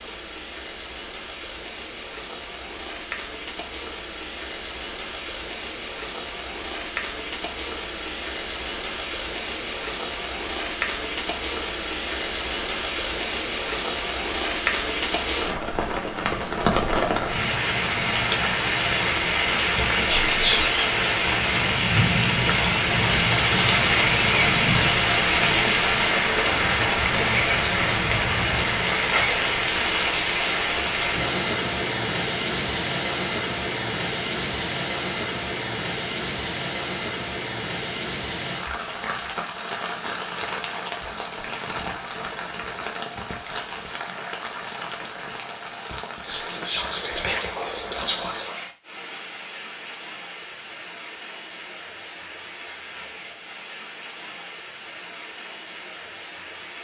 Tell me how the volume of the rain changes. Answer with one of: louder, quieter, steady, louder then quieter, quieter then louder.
louder then quieter.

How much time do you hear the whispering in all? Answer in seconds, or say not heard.
3 s.